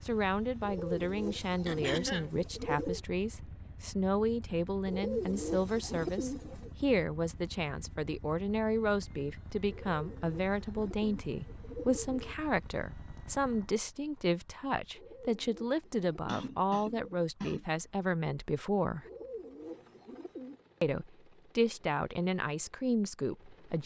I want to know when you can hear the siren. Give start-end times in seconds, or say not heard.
not heard.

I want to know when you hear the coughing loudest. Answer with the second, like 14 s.
2 s.